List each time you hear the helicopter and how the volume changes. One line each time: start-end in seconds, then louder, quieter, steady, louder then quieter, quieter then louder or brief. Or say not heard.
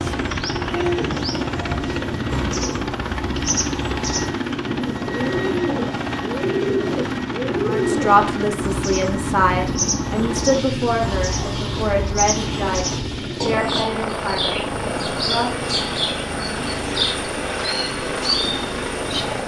0.0-19.4 steady.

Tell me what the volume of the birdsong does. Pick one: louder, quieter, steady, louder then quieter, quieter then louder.
steady.